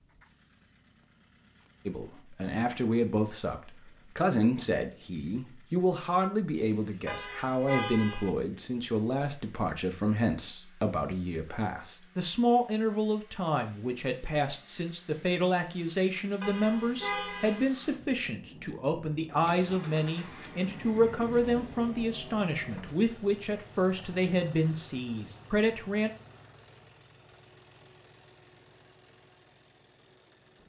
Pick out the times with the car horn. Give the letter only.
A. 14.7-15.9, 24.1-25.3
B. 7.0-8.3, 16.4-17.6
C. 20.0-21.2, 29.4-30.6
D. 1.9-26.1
B.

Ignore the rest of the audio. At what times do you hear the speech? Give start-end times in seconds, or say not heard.
1.9-26.1.